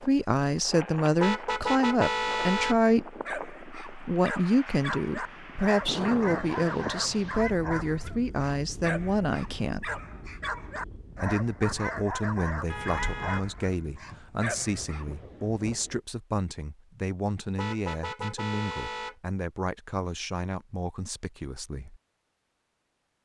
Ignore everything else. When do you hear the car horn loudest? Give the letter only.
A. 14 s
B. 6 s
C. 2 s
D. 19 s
C.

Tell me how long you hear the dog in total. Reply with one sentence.
You can hear the dog for 12 seconds altogether.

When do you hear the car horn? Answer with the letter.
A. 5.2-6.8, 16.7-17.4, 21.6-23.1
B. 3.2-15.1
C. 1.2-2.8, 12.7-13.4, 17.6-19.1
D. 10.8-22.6
C.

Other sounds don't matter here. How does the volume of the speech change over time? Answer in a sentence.
The volume of the speech goes down.